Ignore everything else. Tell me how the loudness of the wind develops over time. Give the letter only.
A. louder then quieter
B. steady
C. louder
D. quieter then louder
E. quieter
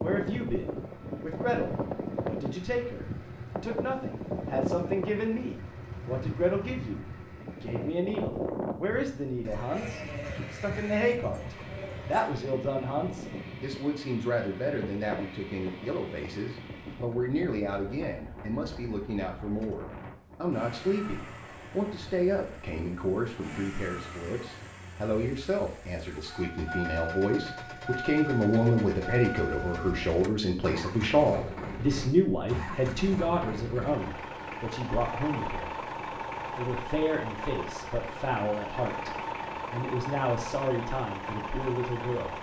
E.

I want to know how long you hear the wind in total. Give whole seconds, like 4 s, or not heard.
25 s.